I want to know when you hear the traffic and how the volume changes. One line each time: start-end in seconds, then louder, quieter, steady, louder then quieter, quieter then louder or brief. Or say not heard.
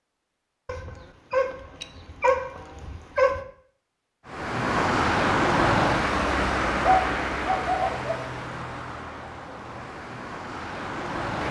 4.2-11.4 quieter.